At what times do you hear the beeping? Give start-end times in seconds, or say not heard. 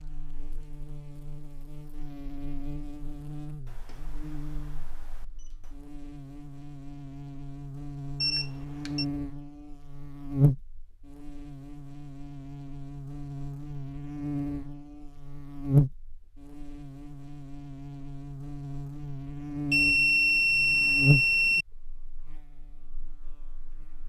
3.6-5.8, 8.2-9.1, 19.7-21.6.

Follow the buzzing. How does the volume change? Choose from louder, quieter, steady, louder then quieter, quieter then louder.
louder.